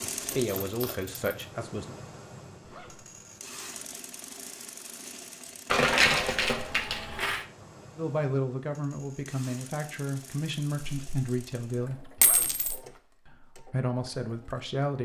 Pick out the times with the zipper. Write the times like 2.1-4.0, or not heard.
2.6-3.1, 12.2-12.7.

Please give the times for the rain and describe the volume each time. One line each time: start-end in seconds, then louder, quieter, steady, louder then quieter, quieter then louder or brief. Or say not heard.
not heard.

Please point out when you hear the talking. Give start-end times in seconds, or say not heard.
0.1-1.9, 8.0-12.1, 13.2-14.9.